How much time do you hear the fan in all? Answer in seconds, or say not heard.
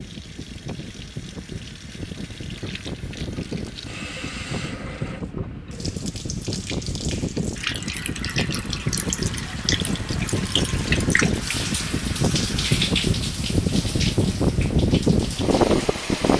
16 s.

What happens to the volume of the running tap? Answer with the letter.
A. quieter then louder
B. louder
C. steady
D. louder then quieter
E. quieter
B.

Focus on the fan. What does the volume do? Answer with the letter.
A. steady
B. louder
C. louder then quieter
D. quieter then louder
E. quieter
B.